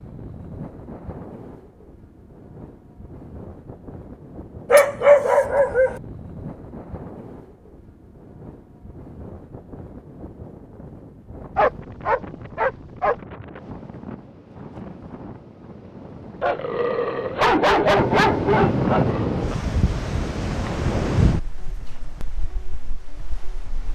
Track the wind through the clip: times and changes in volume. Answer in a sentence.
You can hear the wind from 0.0 to 23.9 s, getting louder.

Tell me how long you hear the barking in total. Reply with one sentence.
You can hear the barking for 6 seconds altogether.